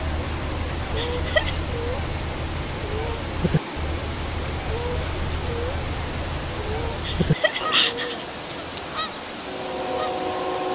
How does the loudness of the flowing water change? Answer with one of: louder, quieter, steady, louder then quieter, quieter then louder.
steady.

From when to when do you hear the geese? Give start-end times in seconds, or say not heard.
0.0-10.7.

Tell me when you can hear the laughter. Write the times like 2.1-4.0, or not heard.
0.9-1.6, 7.0-8.2.